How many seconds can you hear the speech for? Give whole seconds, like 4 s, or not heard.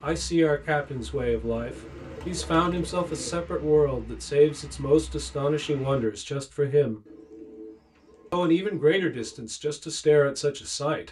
10 s.